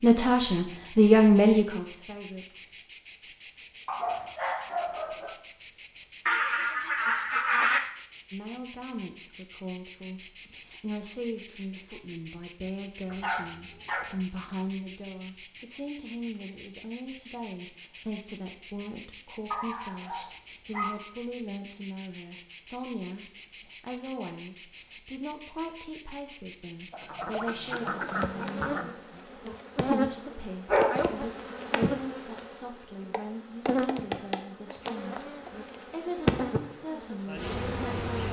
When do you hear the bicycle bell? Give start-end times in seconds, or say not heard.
not heard.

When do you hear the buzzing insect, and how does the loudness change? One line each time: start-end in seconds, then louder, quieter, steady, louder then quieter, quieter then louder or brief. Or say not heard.
0.0-38.2 steady.